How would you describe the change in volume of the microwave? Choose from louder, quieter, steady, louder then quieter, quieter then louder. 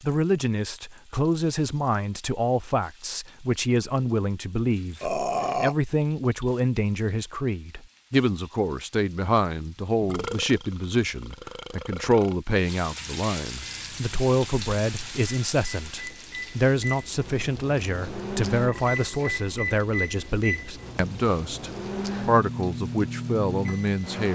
louder.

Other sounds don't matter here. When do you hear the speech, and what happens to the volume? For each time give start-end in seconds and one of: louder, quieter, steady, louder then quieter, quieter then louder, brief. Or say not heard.
0.0-24.2 steady.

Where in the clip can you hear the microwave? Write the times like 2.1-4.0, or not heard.
13.6-24.2.